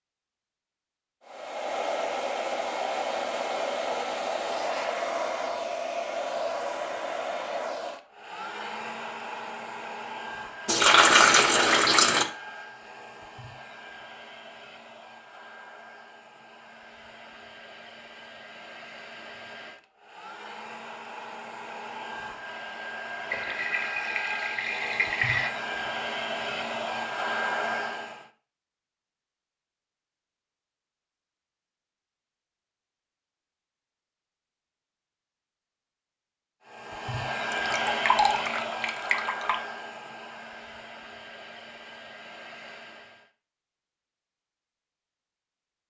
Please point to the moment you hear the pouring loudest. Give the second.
11 s.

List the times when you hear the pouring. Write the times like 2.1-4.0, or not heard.
10.7-12.2, 23.3-25.5, 37.5-39.5.